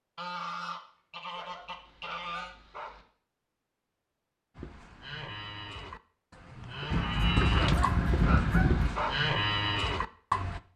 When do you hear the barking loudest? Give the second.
9 s.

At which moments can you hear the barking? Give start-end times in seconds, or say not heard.
1.3-3.0, 7.5-9.2.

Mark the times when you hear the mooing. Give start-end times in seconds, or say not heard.
4.5-10.6.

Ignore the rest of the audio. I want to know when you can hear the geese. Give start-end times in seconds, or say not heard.
0.1-2.5, 6.9-8.9.